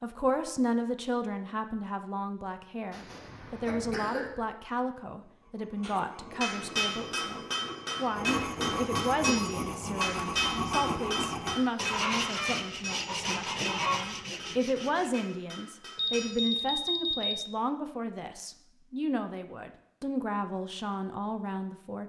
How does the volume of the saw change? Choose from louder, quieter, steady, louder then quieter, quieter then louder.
louder.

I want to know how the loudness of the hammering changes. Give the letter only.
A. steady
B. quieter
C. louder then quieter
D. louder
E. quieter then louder
B.